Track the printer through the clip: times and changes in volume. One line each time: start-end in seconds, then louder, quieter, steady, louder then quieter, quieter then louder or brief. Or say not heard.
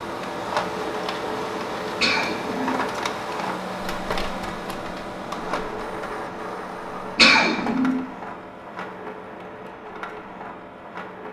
0.0-11.2 quieter.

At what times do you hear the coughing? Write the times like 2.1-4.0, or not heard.
2.0-2.8, 7.2-8.0.